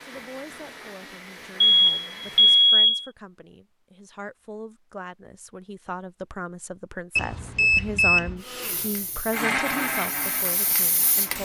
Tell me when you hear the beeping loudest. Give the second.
3 s.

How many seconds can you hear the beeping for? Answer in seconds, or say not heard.
3 s.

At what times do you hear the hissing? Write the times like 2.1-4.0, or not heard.
8.6-11.4.